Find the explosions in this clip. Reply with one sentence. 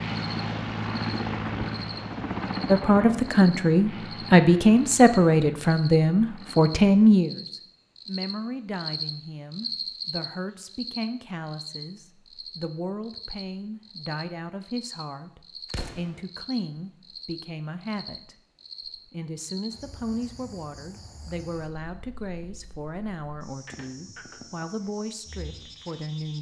The explosions can be heard from 15.7 to 16.2 s.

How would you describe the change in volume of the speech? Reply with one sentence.
The loudness of the speech goes down.